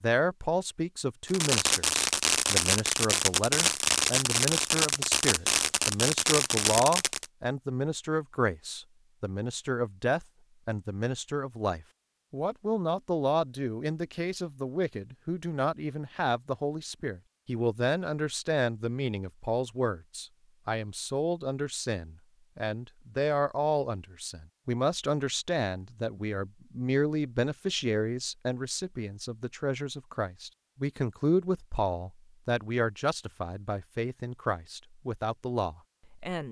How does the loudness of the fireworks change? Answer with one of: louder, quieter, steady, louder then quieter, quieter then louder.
steady.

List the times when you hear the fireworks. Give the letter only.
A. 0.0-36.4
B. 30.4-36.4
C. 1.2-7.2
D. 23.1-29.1
C.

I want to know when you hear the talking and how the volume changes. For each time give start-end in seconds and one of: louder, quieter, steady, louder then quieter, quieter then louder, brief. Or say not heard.
0.0-36.4 steady.